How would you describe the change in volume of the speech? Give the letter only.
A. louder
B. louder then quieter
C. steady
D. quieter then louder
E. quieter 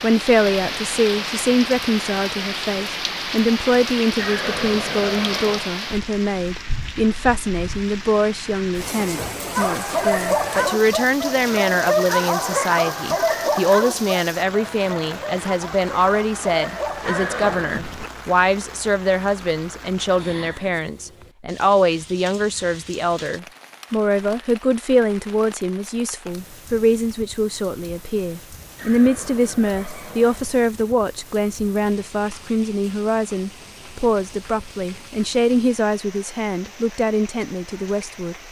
C.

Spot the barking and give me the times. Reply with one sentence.
You can hear the barking from 9.6 to 18.1 s.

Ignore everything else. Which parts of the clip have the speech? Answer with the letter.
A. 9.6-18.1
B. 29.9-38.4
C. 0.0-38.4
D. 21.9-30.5
C.